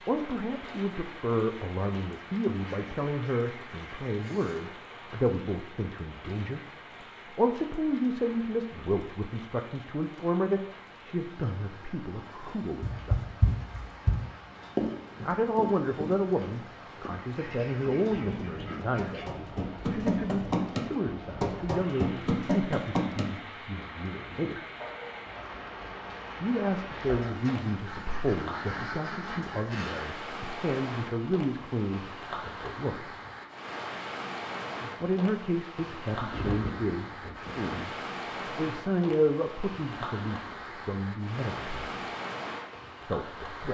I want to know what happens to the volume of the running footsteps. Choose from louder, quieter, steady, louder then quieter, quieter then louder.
quieter then louder.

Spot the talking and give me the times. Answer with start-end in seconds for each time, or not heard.
0.1-6.6, 7.2-13.4, 15.2-24.6, 26.4-33.0, 35.0-41.9, 43.0-43.6.